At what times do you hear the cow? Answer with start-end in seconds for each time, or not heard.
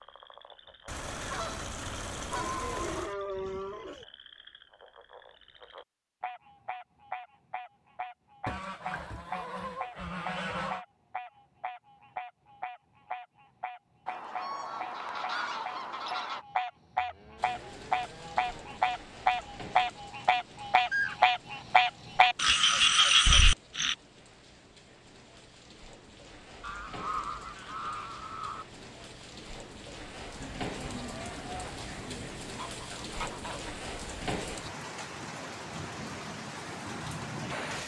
2.3-4.0, 16.9-18.9, 30.4-32.4.